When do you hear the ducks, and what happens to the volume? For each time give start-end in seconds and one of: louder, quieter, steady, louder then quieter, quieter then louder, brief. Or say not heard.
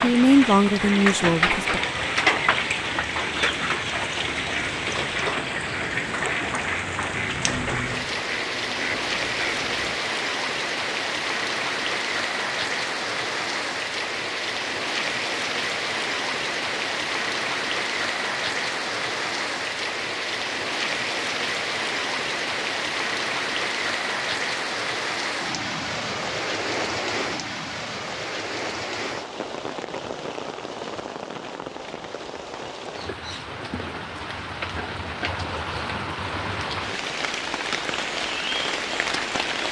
3.4-10.0 steady.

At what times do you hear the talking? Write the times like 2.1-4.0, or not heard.
0.0-1.8.